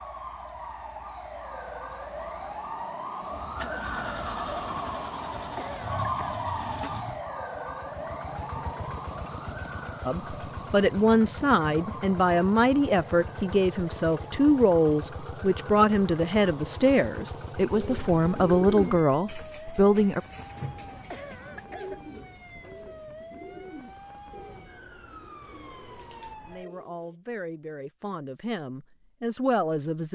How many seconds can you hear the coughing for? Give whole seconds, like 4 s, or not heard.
2 s.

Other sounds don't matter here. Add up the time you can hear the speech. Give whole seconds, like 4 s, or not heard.
14 s.